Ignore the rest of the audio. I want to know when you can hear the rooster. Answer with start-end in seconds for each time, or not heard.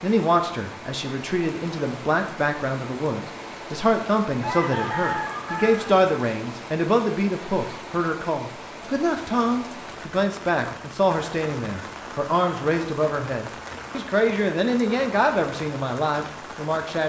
4.4-6.0.